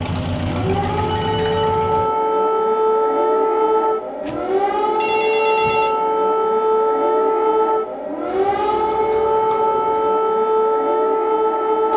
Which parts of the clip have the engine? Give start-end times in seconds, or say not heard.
0.0-2.1.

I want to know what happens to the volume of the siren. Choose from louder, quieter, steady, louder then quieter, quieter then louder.
steady.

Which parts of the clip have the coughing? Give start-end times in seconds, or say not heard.
not heard.